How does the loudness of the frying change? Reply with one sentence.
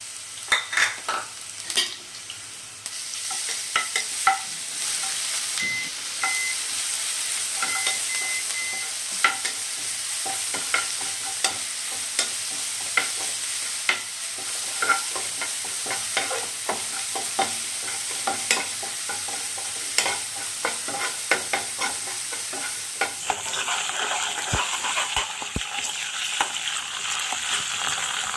The loudness of the frying stays about the same.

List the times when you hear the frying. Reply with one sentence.
You can hear the frying from 0.0 to 28.3 s.